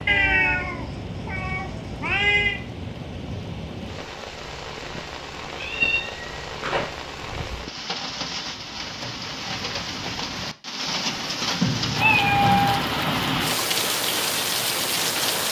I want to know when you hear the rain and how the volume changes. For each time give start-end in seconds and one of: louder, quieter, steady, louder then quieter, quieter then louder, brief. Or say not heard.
0.0-15.4 louder.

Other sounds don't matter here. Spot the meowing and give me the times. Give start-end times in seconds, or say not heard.
0.1-2.6, 5.6-7.5, 11.6-12.8.